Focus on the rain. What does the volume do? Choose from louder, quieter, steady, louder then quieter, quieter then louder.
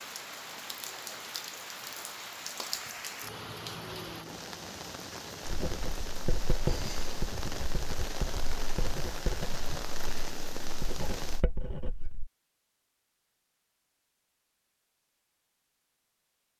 steady.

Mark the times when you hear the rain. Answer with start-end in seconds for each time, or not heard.
0.0-11.4.